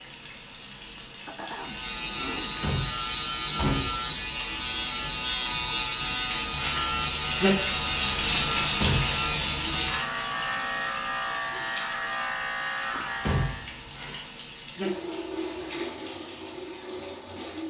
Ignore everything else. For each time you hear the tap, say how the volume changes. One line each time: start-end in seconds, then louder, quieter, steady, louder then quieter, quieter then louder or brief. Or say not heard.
0.0-17.6 louder then quieter.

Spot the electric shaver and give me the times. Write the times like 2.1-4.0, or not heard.
1.5-13.7.